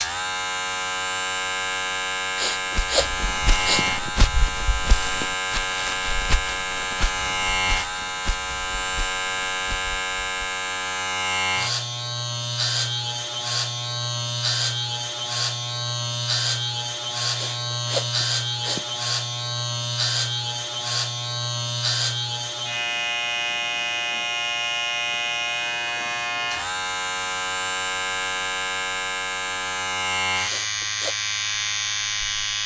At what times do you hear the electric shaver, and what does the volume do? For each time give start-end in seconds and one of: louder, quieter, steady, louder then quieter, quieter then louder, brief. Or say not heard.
0.0-32.6 steady.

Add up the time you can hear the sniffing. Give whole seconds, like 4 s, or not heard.
4 s.